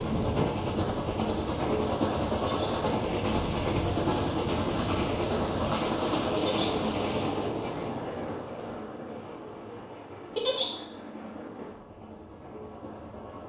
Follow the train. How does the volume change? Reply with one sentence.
The volume of the train goes down.